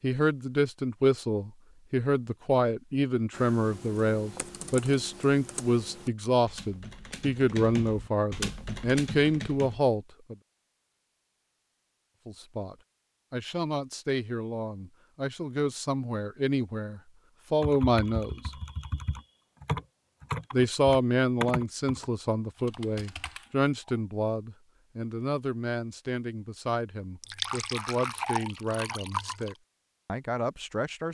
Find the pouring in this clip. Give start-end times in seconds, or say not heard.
27.2-29.6.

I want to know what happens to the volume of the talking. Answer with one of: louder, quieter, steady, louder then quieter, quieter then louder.
quieter.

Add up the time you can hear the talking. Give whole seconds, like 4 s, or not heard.
27 s.